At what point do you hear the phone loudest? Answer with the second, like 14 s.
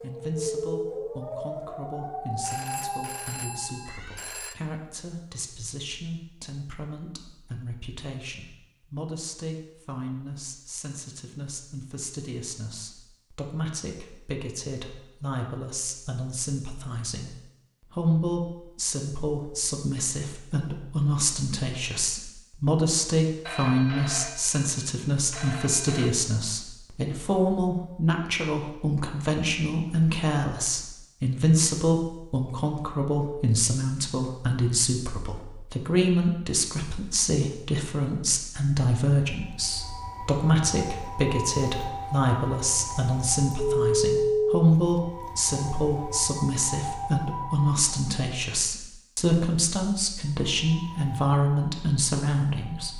44 s.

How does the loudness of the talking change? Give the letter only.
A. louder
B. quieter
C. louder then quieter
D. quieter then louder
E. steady
A.